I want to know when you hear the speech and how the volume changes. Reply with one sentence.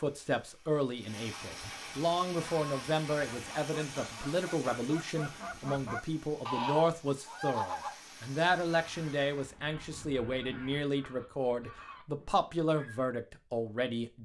You can hear the speech from 0.0 to 14.2 s, at a steady volume.